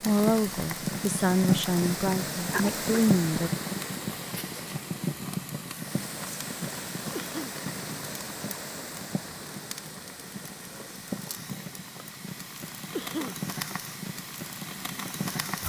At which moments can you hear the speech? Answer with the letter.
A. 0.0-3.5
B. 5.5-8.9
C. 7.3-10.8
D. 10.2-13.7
A.